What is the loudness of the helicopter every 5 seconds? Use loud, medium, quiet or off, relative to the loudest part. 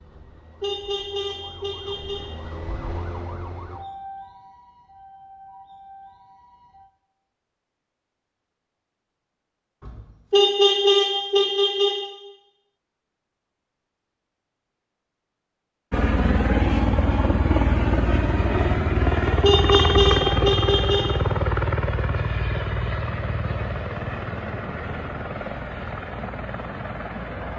off, off, off, loud, loud, medium.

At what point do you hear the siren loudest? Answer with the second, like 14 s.
3 s.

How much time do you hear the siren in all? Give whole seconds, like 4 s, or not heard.
7 s.